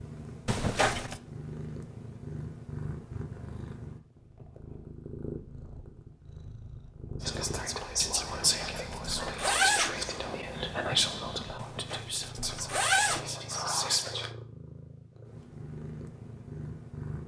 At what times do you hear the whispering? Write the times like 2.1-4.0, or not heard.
7.2-14.3.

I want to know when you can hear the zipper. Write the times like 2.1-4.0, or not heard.
0.5-1.2, 8.4-10.0, 11.6-13.3.